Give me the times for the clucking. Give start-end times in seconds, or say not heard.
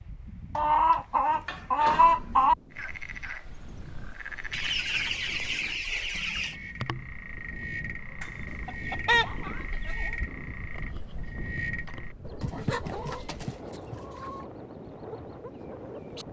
0.6-2.5, 4.5-6.5, 8.2-10.1, 12.4-14.4.